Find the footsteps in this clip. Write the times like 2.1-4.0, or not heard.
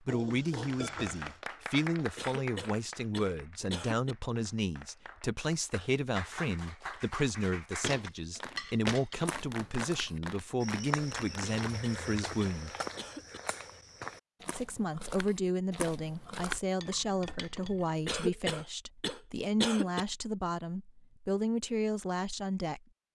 7.8-16.6.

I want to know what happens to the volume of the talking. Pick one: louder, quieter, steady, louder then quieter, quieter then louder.
steady.